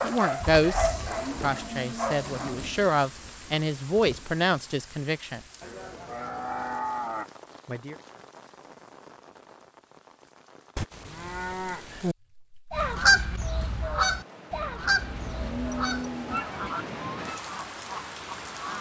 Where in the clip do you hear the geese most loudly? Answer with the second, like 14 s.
13 s.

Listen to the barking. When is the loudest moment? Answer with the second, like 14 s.
1 s.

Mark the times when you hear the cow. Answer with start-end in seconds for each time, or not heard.
0.9-2.9, 5.6-7.3, 10.8-12.2, 15.0-16.8.